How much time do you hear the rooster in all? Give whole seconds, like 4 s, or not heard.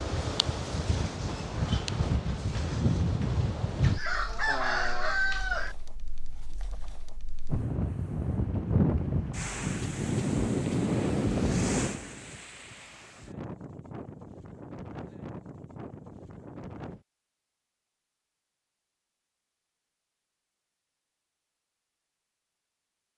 2 s.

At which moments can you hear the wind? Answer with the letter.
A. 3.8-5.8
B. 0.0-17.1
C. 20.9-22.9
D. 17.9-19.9
B.